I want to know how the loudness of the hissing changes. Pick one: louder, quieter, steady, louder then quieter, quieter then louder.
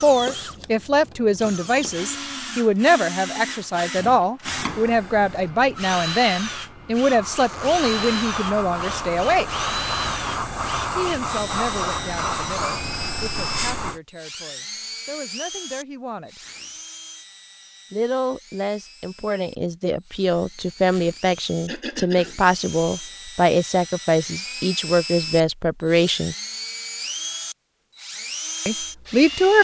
louder.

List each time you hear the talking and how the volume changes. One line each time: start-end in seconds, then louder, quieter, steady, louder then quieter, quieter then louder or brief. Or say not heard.
0.0-9.5 steady
10.9-16.4 quieter then louder
17.9-26.4 louder
28.6-29.5 brief.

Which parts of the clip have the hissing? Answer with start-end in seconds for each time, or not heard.
4.5-14.0.